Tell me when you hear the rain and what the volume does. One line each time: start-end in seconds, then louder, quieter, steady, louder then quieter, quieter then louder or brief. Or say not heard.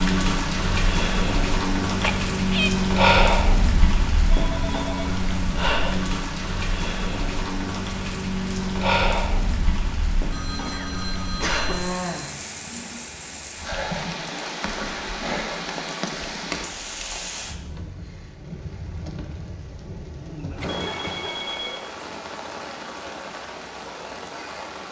0.0-24.8 quieter.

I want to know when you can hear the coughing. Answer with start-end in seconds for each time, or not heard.
2.0-2.7, 10.7-11.8, 20.6-21.3.